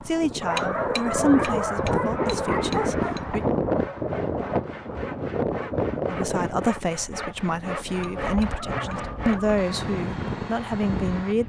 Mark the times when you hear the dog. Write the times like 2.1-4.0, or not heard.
0.4-3.1, 8.0-9.6.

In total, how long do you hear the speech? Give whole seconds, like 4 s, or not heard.
9 s.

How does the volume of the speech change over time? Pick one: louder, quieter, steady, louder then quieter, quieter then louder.
quieter then louder.